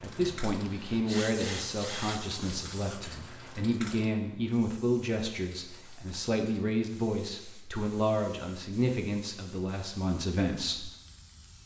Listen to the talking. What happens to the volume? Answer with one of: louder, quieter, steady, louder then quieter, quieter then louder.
steady.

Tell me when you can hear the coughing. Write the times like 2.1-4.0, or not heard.
not heard.